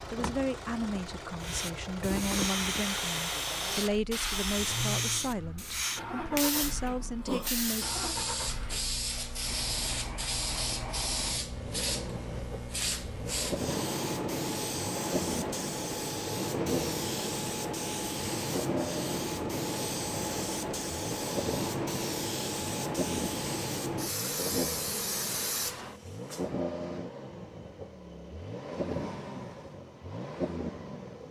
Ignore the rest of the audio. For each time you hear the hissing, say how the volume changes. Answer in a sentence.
The hissing can be heard from 1.4 to 26.4 s, at a steady volume.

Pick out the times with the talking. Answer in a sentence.
The talking can be heard from 0.1 to 8.0 s.